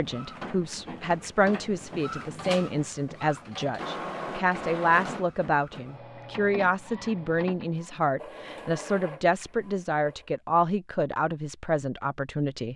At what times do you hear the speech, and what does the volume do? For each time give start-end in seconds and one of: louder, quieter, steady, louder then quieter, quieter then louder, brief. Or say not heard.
0.0-12.7 steady.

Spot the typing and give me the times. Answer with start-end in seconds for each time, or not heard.
not heard.